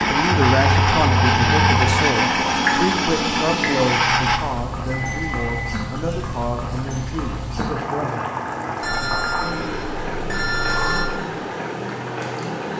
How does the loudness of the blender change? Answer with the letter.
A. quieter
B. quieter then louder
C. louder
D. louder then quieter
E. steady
E.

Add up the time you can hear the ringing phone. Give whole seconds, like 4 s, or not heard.
5 s.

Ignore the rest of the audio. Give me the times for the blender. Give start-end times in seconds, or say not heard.
0.0-4.4.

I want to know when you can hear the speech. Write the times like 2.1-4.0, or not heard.
0.1-8.2.